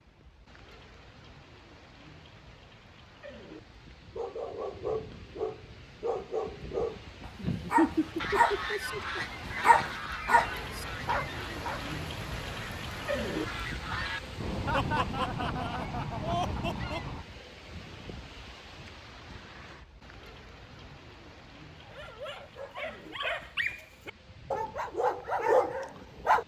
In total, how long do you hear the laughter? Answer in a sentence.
The laughter can be heard for 4 seconds in total.